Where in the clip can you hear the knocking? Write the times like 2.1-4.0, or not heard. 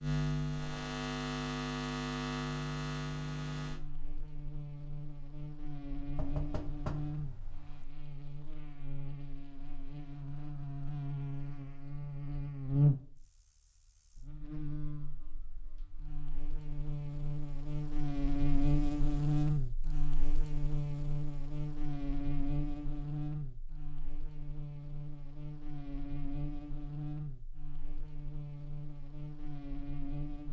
6.2-7.8.